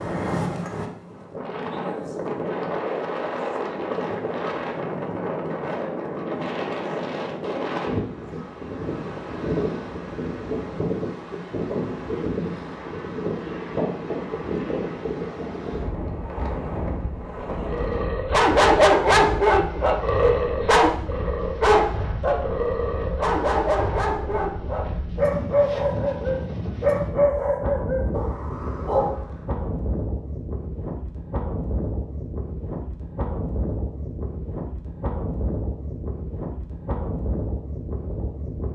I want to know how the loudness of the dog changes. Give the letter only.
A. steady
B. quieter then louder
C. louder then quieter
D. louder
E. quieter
E.